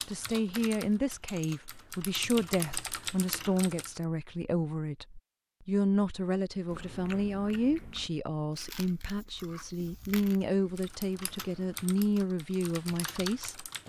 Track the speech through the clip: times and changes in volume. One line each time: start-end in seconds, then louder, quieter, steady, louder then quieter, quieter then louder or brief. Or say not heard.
0.1-13.8 steady.